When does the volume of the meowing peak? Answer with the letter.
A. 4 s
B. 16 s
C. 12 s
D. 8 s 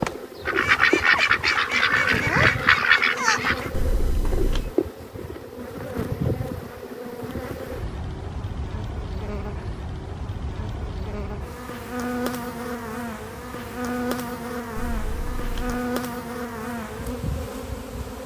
A.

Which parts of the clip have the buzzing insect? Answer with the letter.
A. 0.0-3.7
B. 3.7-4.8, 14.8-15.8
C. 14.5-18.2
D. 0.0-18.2
D.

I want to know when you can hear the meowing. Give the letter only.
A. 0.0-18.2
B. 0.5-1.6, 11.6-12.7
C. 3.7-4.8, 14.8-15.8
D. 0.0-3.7
C.